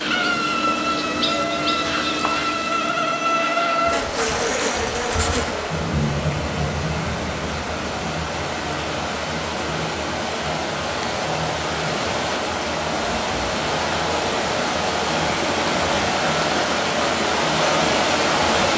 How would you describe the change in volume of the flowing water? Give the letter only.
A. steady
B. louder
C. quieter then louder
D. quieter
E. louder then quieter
B.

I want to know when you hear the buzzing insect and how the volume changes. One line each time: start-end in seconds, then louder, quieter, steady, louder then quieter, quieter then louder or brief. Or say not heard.
0.0-18.7 quieter.